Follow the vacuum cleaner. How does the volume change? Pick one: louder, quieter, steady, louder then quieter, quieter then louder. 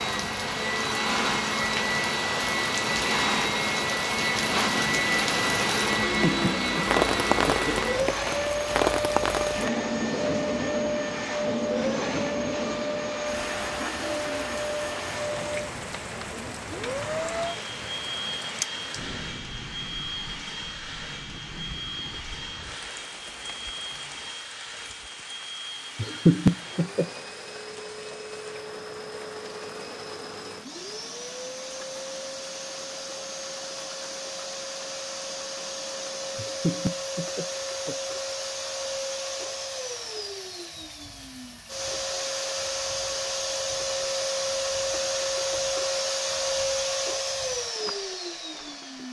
quieter then louder.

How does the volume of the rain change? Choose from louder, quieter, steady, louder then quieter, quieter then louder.
quieter.